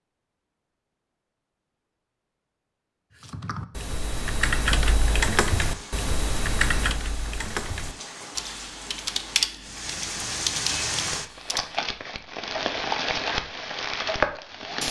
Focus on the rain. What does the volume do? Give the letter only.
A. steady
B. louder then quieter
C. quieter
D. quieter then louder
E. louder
E.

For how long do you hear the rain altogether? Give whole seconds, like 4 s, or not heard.
9 s.